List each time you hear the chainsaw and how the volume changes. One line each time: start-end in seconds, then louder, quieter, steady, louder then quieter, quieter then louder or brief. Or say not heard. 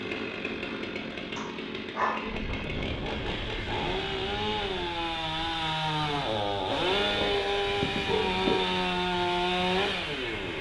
0.0-10.5 louder.